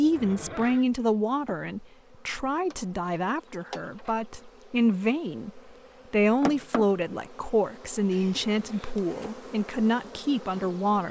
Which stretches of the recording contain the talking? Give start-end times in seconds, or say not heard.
0.0-11.0.